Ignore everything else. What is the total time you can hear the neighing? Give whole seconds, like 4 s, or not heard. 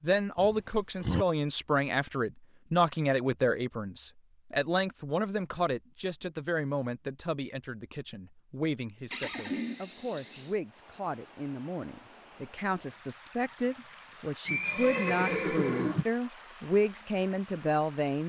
4 s.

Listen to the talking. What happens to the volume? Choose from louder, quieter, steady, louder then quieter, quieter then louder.
quieter then louder.